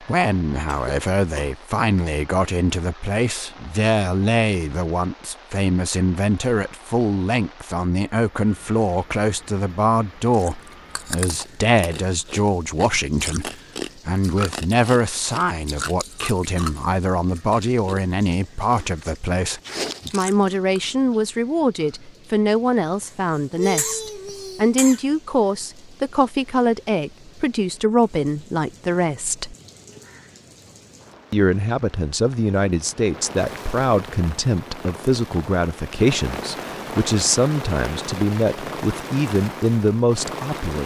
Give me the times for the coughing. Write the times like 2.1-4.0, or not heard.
0.7-1.6, 23.1-25.0.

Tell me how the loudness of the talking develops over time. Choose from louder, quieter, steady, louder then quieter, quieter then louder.
steady.